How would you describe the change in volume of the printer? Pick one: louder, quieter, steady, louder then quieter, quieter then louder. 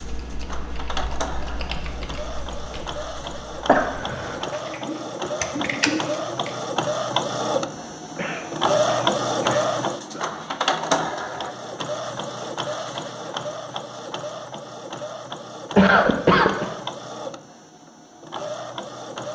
louder then quieter.